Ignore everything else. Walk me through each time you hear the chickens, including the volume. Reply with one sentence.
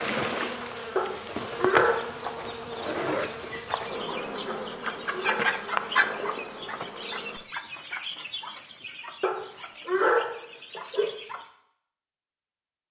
You can hear the chickens from 3.0 to 11.5 s, getting louder then quieter.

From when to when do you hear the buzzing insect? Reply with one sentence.
The buzzing insect can be heard from 0.0 to 7.5 s.